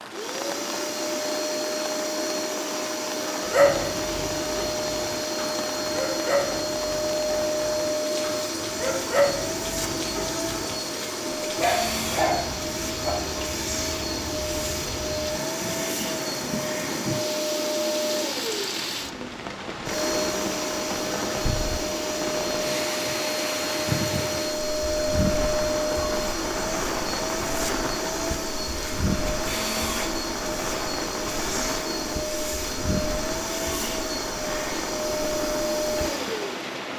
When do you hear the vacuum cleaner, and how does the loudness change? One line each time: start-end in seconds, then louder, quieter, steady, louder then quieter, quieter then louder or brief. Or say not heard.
0.0-36.9 steady.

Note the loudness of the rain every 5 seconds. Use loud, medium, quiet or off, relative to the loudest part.
medium, medium, medium, loud, loud, loud, loud, loud.